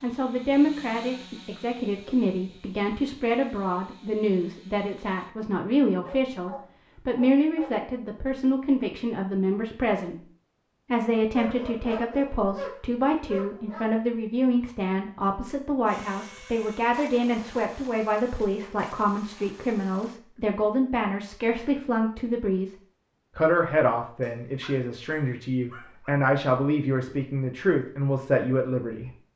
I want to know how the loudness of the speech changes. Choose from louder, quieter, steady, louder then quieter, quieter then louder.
steady.